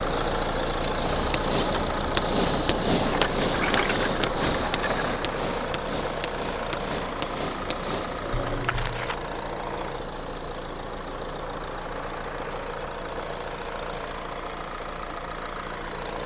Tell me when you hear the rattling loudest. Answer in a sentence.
The volume of the rattling peaks at 4 seconds.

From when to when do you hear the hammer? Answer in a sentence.
You can hear the hammer from 0.8 to 8.9 s.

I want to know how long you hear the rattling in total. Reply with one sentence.
The rattling can be heard for 3 seconds in total.